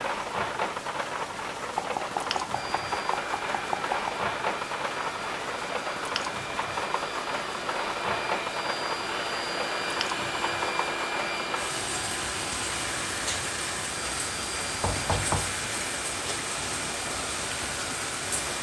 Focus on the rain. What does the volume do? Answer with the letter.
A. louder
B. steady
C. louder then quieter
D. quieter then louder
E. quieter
B.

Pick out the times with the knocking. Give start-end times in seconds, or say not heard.
1.8-4.2, 14.8-15.4.